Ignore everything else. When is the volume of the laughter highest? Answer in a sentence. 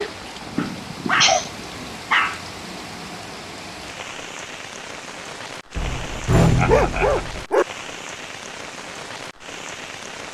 The volume of the laughter peaks at 1 second.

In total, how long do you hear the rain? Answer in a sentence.
You can hear the rain for 10 seconds altogether.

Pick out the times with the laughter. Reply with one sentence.
You can hear the laughter from 0.5 to 1.6 s and from 6.4 to 7.4 s.